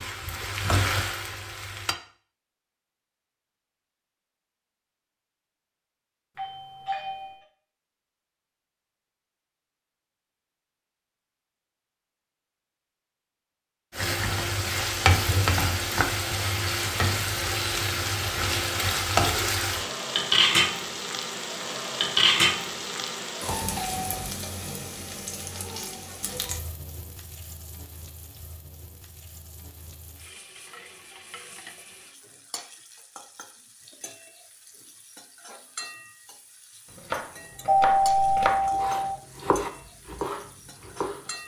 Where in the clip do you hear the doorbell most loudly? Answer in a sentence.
The loudest moment of the doorbell is at 38 seconds.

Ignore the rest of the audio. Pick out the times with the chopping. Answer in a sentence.
The chopping can be heard from 36.9 to 41.3 s.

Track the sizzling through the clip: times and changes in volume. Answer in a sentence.
The sizzling can be heard briefly from 0.0 to 1.9 s; and from 13.9 to 41.4 s, getting quieter.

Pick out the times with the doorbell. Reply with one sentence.
The doorbell can be heard from 6.3 to 7.4 s, from 23.4 to 24.4 s and from 37.6 to 39.1 s.